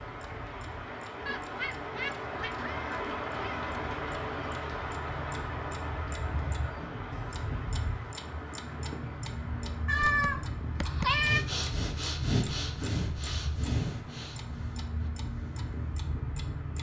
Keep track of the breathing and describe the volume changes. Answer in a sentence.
The volume of the breathing goes down.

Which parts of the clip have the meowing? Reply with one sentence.
The meowing can be heard from 1.2 to 3.6 s and from 9.8 to 11.4 s.